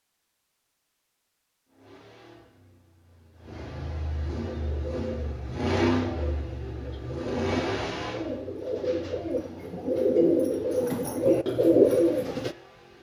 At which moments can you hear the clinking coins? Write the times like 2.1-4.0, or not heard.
not heard.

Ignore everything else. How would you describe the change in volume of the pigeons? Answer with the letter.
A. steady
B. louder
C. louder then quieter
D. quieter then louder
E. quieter
B.